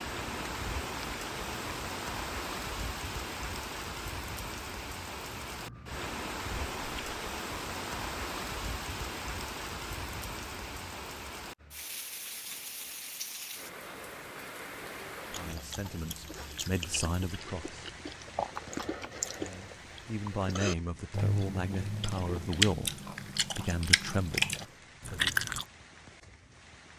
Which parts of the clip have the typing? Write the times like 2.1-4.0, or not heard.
not heard.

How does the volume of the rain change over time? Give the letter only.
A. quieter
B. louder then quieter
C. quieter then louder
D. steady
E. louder
A.